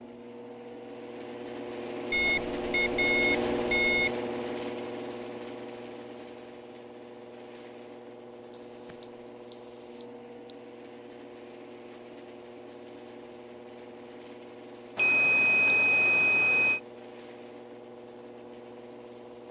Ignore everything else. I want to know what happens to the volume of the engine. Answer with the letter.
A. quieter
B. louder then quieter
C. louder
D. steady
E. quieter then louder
A.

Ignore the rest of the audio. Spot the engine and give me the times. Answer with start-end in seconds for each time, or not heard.
0.0-19.4.